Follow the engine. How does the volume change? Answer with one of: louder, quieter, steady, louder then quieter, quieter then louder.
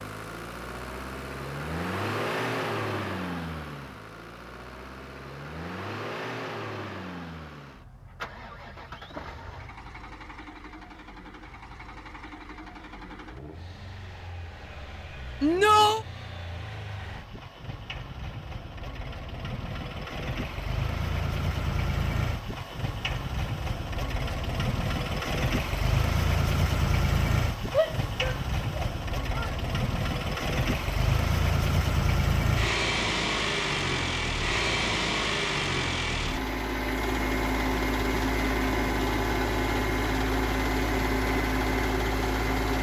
quieter then louder.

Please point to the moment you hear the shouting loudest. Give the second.
16 s.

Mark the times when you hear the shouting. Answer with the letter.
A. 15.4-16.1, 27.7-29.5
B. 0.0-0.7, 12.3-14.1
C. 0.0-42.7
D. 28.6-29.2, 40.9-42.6
A.